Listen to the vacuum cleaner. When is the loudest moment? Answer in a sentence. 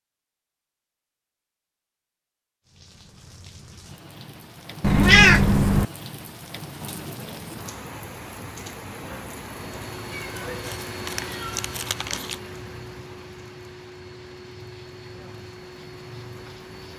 The volume of the vacuum cleaner peaks at 11 seconds.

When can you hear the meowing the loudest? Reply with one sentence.
The volume of the meowing peaks at 5 seconds.